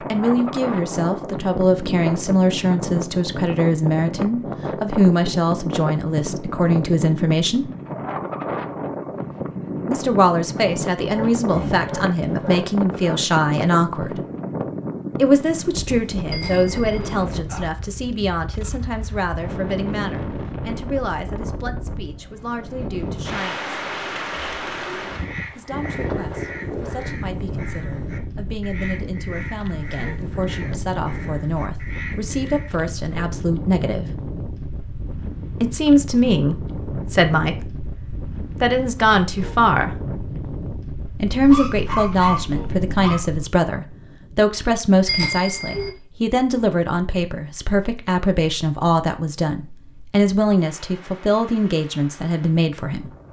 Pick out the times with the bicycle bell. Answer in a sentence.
The bicycle bell can be heard from 16.3 to 17.1 s and from 45.0 to 45.9 s.